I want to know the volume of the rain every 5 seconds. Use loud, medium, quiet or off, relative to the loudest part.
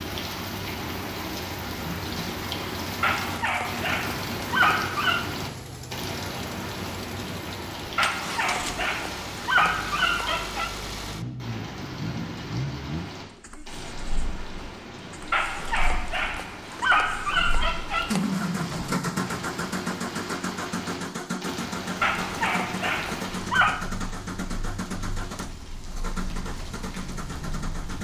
loud, loud, medium, medium, medium, medium.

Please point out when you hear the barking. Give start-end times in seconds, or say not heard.
3.0-5.2, 8.0-10.7, 15.3-18.2, 22.0-23.8.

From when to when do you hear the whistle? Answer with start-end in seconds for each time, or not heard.
not heard.